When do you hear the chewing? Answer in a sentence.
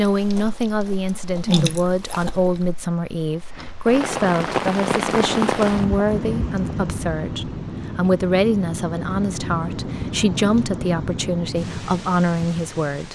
The chewing can be heard from 0.0 to 2.6 s.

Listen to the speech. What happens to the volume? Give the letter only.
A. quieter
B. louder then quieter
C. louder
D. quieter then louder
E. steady
E.